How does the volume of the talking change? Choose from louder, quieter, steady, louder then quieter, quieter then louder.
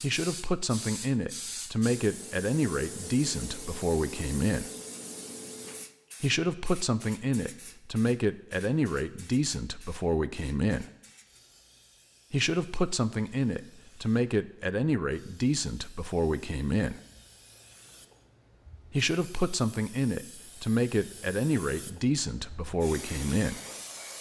steady.